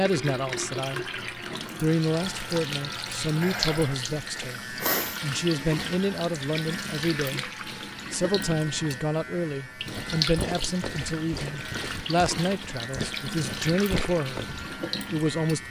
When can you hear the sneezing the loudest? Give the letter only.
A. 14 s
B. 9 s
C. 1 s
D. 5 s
D.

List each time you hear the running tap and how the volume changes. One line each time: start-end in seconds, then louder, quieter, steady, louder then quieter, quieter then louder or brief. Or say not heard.
0.0-15.6 steady.